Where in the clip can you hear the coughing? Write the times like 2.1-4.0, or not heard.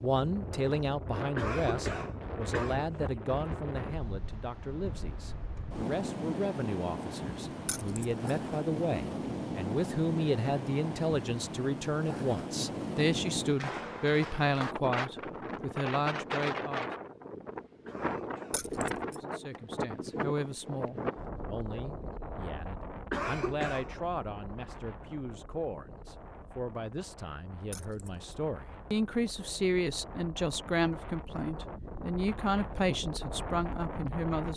1.4-2.8, 17.9-18.6, 23.1-23.9.